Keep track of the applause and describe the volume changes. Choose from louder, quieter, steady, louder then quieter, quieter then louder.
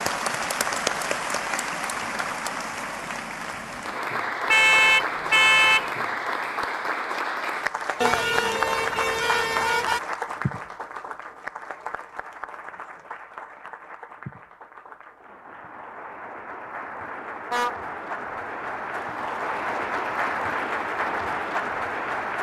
quieter then louder.